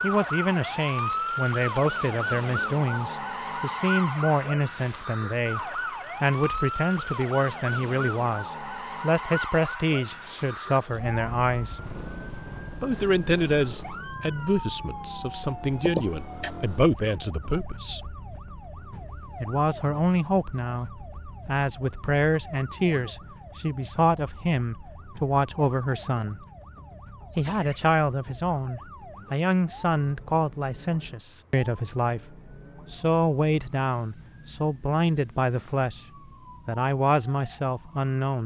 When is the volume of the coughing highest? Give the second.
16 s.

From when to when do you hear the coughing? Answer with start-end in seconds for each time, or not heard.
15.8-16.5, 27.2-27.8.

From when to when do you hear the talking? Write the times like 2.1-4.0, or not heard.
0.0-11.8, 12.8-18.1, 19.4-26.4, 27.4-32.2, 32.9-36.0, 36.6-38.4.